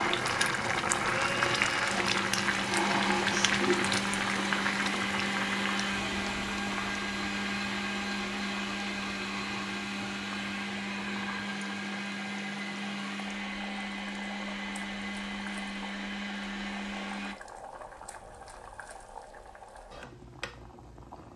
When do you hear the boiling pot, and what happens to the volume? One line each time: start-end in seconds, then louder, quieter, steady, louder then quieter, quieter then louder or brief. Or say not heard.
0.0-21.3 quieter.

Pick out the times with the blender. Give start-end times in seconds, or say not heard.
0.1-17.4.